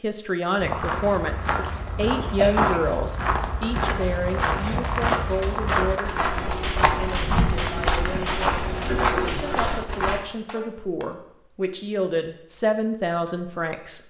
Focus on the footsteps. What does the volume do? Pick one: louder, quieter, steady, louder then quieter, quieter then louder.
steady.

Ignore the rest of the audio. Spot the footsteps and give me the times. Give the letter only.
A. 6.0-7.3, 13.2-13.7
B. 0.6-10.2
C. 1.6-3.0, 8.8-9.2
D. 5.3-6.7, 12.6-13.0
B.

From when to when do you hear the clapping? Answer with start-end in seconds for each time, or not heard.
4.8-11.1.